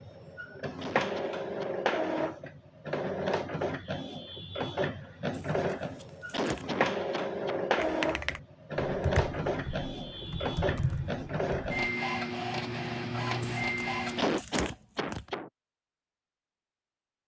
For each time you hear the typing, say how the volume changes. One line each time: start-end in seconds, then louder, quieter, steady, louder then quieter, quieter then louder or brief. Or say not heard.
7.8-11.8 quieter then louder.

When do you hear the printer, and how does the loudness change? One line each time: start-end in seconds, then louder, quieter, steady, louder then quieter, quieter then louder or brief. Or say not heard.
0.0-14.3 steady.